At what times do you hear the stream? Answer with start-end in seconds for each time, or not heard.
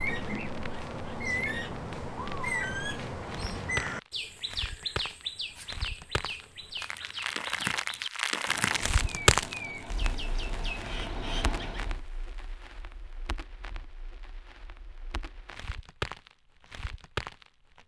not heard.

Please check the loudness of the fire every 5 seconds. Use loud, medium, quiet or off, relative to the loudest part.
medium, loud, quiet, medium.